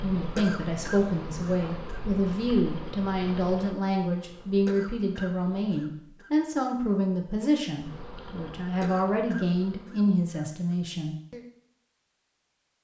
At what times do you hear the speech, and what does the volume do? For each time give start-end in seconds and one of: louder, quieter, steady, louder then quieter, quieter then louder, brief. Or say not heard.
0.0-11.4 steady.